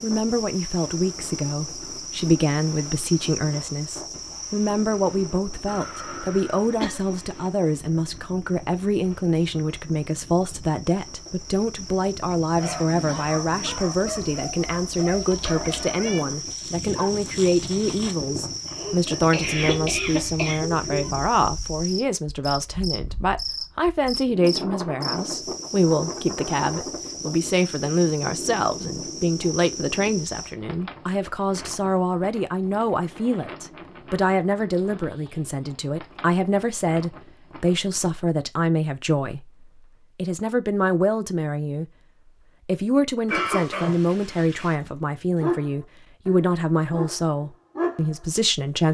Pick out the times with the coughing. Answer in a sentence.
The coughing can be heard from 5.7 to 7.5 s, from 18.6 to 20.6 s and from 43.2 to 44.8 s.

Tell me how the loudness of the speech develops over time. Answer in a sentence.
The loudness of the speech stays about the same.